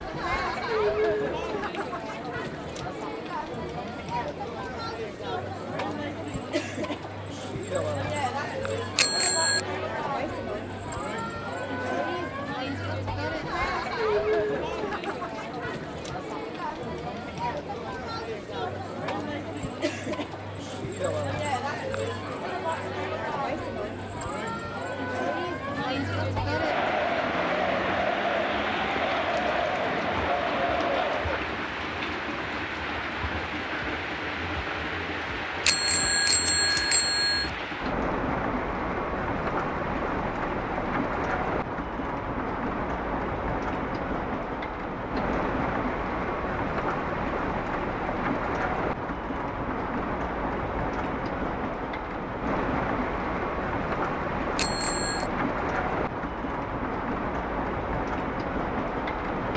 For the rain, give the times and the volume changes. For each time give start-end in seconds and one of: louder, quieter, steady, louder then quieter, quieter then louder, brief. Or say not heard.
26.6-59.5 steady.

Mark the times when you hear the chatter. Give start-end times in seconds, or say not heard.
0.0-31.5.